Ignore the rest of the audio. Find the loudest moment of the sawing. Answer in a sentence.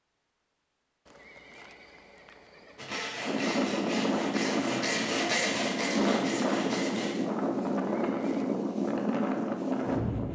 The loudest moment of the sawing is at 5 seconds.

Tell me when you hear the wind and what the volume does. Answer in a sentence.
You can hear the wind from 3.2 to 10.3 s, at a steady volume.